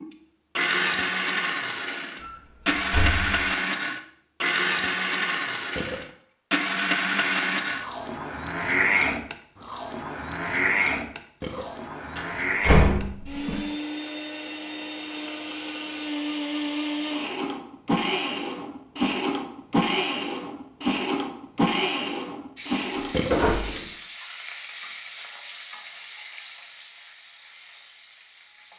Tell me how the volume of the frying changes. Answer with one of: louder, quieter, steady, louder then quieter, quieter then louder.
quieter.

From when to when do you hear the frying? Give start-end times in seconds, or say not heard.
22.6-28.7.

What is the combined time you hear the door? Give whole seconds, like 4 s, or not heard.
3 s.